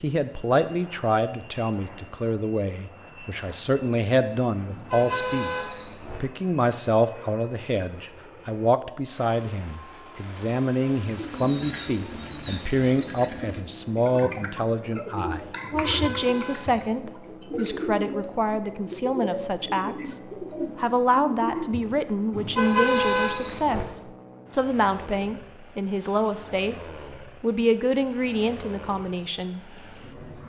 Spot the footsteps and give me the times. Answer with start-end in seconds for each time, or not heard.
not heard.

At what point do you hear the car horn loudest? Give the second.
23 s.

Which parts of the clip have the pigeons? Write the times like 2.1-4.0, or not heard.
11.1-21.9.